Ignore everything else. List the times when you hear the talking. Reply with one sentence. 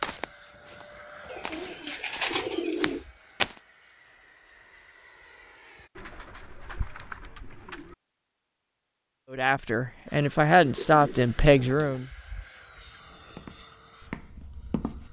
You can hear the talking from 9.3 to 12.1 s.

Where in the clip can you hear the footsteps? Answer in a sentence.
The footsteps can be heard from 0.0 to 3.5 s and from 13.2 to 15.0 s.